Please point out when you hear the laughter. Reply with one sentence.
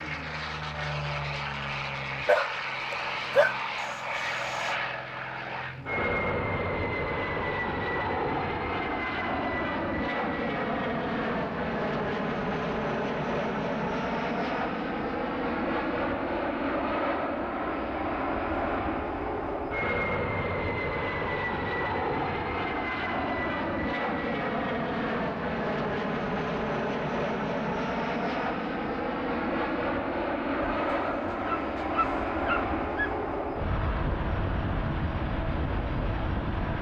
The laughter can't be heard in this clip.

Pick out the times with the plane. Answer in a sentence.
You can hear the plane from 0.0 to 36.7 s.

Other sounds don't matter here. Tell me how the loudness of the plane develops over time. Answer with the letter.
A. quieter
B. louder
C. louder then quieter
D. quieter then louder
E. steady
E.